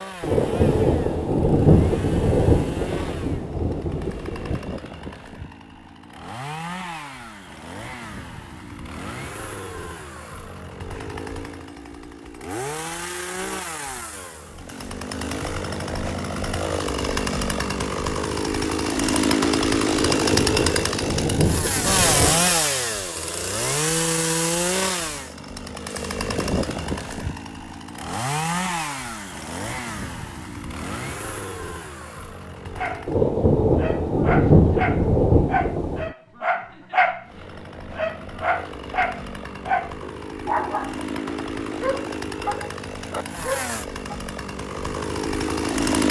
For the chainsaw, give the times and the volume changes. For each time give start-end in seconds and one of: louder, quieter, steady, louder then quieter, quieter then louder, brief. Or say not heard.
0.0-33.2 louder then quieter
37.2-46.0 louder.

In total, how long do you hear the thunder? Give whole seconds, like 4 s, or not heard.
10 s.